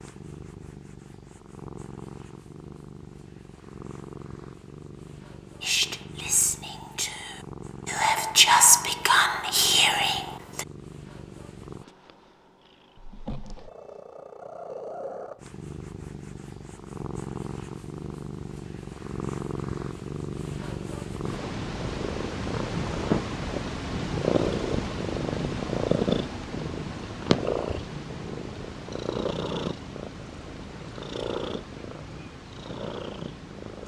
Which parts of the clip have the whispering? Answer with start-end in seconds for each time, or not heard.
5.6-10.7.